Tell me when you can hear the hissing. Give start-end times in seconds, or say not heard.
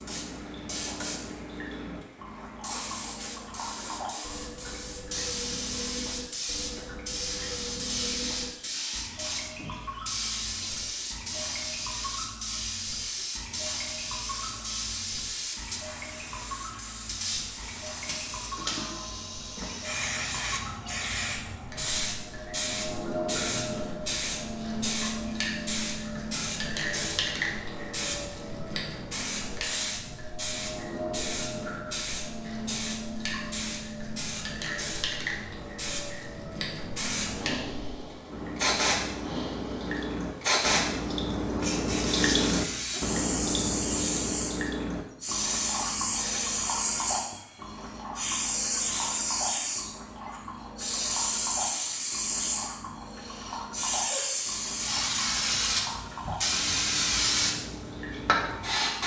0.0-59.0.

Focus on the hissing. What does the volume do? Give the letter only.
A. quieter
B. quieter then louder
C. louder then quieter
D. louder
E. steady
D.